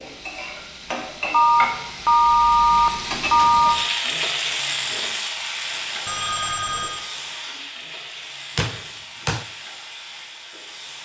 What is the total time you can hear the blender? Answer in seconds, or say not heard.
not heard.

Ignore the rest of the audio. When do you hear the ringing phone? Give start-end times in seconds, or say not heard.
1.3-3.8, 6.0-7.0.